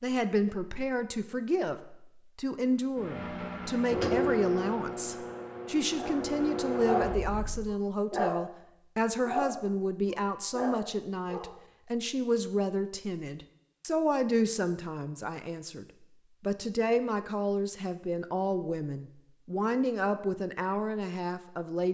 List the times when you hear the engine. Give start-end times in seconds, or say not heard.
3.0-7.8.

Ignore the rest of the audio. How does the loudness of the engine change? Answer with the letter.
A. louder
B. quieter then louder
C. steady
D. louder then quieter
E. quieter
B.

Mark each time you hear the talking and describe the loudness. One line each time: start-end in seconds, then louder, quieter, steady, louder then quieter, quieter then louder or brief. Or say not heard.
0.0-21.9 steady.